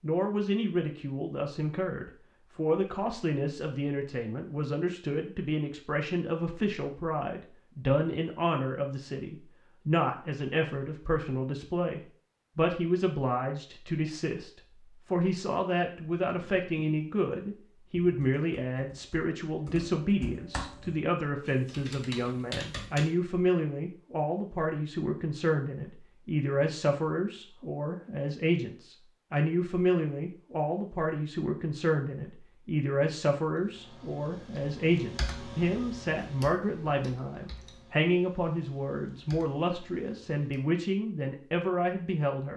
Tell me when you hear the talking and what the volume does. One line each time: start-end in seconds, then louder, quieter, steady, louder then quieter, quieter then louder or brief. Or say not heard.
0.0-42.5 steady.